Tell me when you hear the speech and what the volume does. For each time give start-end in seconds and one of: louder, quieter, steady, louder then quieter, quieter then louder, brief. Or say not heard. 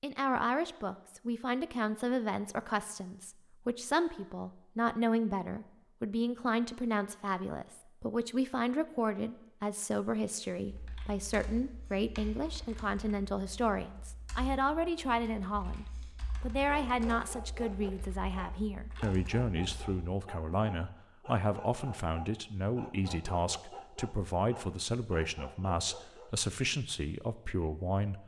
0.0-28.2 steady.